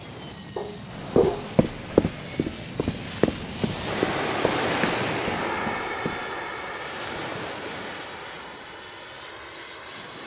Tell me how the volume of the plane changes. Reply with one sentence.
The loudness of the plane goes up, then down.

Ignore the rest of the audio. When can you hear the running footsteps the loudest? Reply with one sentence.
The volume of the running footsteps peaks at 2 seconds.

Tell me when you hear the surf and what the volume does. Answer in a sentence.
The surf can be heard from 0.0 to 10.2 s, getting louder then quieter.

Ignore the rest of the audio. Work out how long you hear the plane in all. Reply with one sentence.
The plane can be heard for 10 seconds in total.